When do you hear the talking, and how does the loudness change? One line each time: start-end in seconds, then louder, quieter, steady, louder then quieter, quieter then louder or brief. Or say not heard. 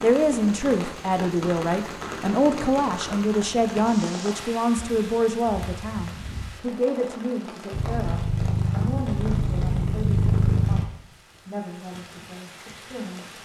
0.0-13.3 quieter.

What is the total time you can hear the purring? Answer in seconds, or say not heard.
3 s.